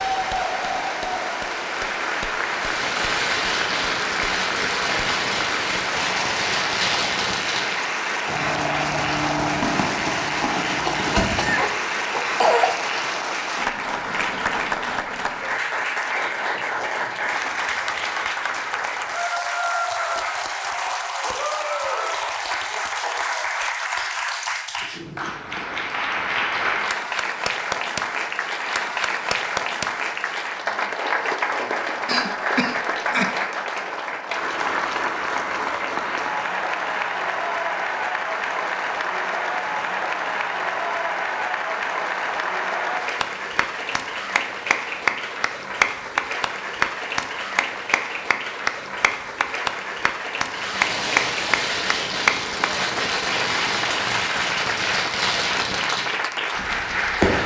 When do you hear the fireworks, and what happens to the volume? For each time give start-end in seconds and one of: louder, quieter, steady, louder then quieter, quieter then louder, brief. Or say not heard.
2.4-11.8 steady
50.5-57.4 quieter.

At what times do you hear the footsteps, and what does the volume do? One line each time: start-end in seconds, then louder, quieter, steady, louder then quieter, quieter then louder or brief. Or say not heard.
not heard.